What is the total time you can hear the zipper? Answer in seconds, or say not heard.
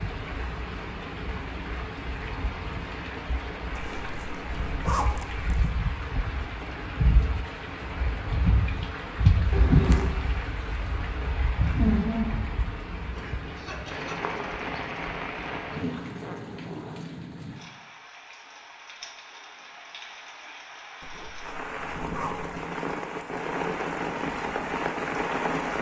4 s.